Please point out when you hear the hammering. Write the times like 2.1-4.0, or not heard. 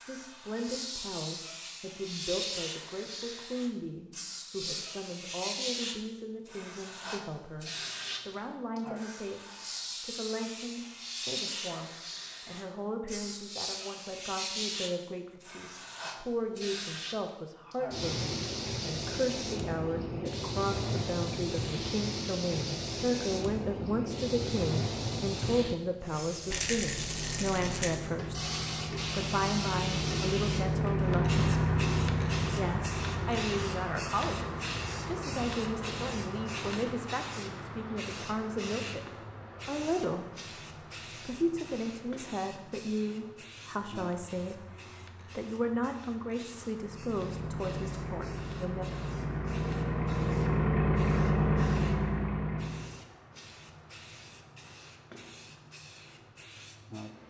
not heard.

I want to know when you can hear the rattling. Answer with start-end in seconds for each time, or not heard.
26.5-28.0.